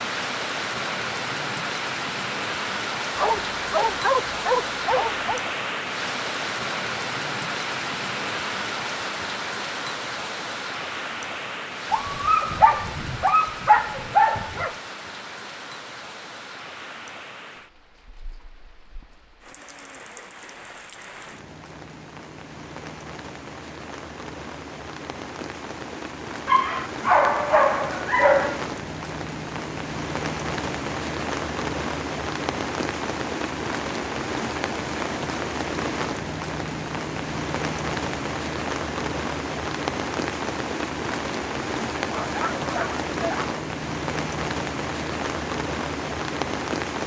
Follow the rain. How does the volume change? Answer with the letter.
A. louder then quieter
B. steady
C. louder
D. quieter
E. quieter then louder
E.